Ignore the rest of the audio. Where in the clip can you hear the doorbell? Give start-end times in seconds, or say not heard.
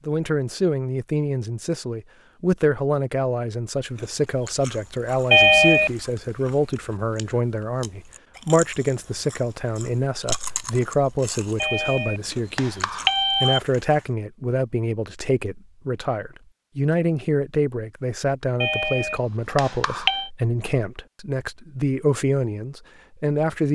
5.3-5.9, 11.6-13.6, 18.6-20.3.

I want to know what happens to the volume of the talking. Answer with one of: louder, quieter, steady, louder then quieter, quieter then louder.
steady.